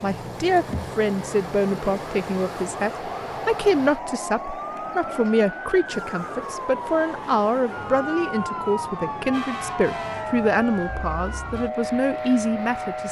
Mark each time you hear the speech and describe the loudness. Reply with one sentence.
You can hear the speech from 0.0 to 13.0 s, at a steady volume.